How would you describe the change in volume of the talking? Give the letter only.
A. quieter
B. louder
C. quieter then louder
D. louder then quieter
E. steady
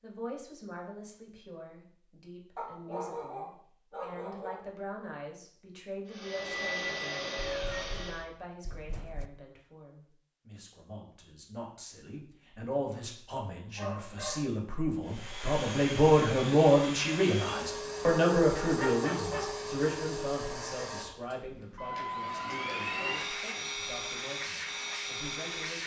D.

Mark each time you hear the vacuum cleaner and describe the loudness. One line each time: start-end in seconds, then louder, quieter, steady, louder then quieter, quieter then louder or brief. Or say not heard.
6.0-8.2 brief
15.0-25.8 steady.